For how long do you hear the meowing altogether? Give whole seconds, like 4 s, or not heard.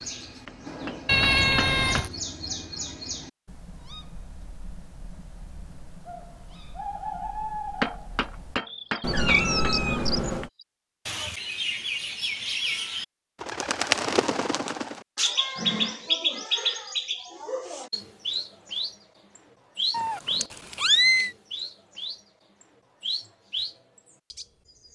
4 s.